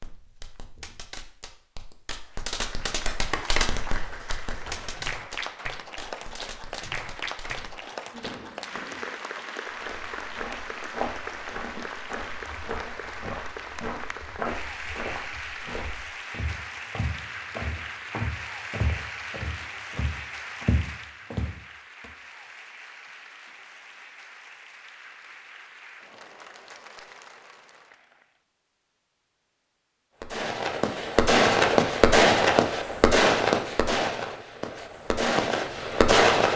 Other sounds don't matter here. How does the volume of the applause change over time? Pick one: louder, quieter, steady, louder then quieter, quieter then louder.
quieter.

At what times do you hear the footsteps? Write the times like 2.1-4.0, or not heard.
9.7-22.1.